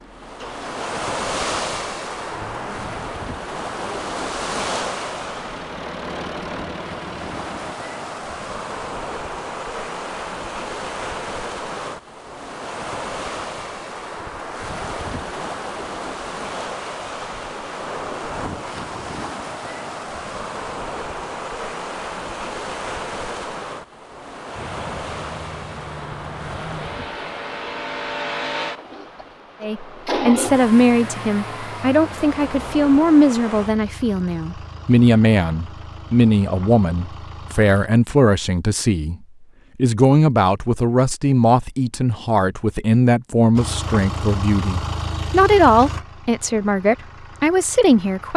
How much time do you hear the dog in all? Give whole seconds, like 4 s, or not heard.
not heard.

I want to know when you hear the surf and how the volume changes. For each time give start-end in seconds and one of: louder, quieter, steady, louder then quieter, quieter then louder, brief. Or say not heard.
0.0-33.8 quieter.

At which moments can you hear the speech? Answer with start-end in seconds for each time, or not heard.
29.6-39.1, 39.8-48.3.